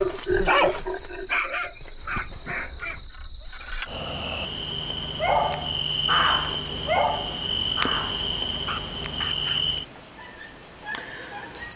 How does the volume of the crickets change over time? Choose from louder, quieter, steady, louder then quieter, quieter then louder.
louder.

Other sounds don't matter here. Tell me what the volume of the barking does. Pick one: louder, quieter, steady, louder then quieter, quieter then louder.
quieter.